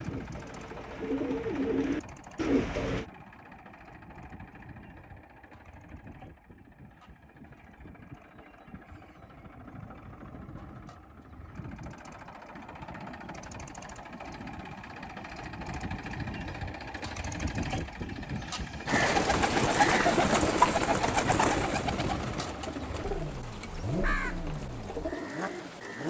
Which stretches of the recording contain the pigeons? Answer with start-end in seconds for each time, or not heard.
0.0-3.0, 18.9-26.0.